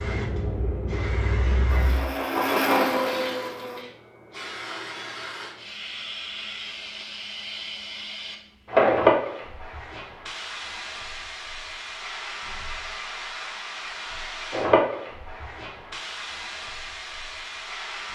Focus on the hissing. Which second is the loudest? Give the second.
9 s.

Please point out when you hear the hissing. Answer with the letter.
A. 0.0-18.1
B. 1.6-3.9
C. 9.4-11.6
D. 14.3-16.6
A.